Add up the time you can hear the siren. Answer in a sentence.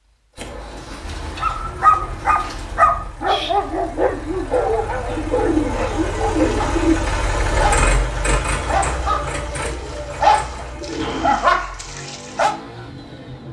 The siren can't be heard in this clip.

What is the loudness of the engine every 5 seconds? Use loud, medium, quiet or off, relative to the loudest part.
quiet, loud, medium.